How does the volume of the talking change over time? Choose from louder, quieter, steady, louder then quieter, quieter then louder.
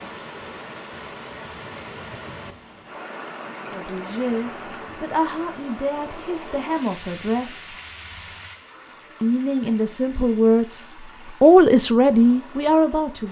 louder.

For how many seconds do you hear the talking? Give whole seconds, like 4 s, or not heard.
8 s.